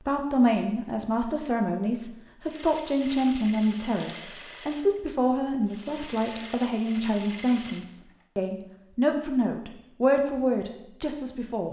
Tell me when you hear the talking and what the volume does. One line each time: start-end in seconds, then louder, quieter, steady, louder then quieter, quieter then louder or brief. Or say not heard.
0.1-11.6 steady.